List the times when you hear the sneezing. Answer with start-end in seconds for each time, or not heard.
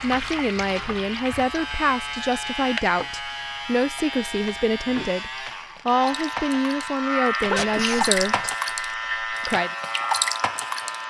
7.5-8.4.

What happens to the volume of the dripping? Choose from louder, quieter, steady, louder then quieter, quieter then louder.
quieter then louder.